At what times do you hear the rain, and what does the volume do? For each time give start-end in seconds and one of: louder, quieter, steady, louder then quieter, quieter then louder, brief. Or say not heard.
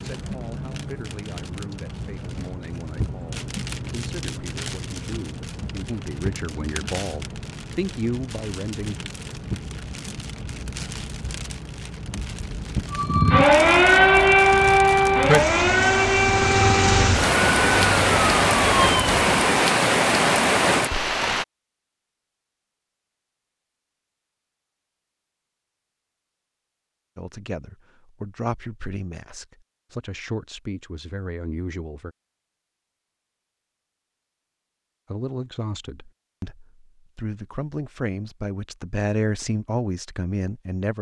0.0-21.4 louder.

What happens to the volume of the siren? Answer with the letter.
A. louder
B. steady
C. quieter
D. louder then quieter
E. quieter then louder
C.